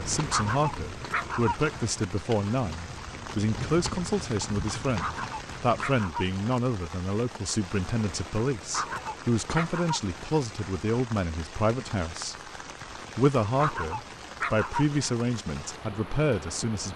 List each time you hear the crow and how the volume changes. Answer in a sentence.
You can't hear the crow here.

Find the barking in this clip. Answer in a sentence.
The barking can be heard from 0.3 to 1.8 s, from 5.0 to 6.4 s, from 8.7 to 10.2 s and from 13.6 to 15.2 s.